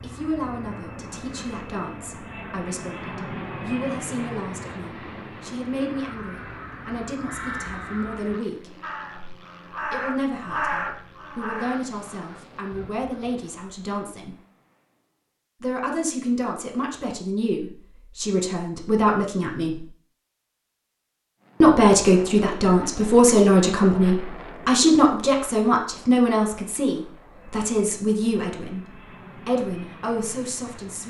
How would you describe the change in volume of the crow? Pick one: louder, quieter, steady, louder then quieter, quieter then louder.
louder then quieter.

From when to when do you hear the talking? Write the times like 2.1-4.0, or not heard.
0.0-8.8, 9.9-14.3, 15.6-19.9, 21.6-28.8, 29.4-31.0.